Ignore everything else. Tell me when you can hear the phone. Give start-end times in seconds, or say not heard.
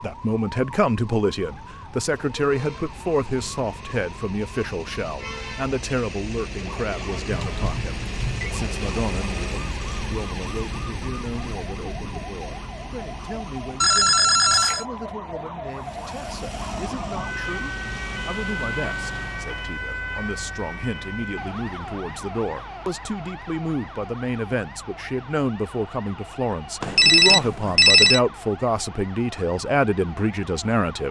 7.3-8.3, 13.8-14.8, 26.8-28.2.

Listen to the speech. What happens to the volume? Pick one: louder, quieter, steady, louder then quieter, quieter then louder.
quieter then louder.